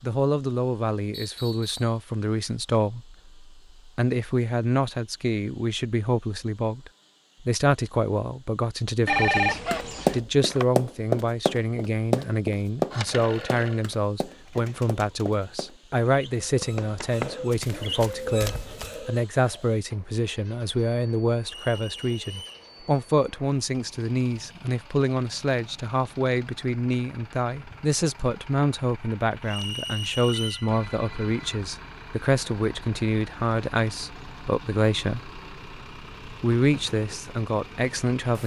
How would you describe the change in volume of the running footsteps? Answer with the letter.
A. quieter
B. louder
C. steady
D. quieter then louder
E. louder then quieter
A.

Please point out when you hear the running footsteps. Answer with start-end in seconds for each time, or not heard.
9.3-19.0.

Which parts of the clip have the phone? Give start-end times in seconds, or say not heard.
9.1-10.7, 12.9-13.8, 29.6-31.6.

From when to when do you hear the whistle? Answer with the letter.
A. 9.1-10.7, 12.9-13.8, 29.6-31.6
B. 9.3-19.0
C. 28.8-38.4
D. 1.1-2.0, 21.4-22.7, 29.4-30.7
D.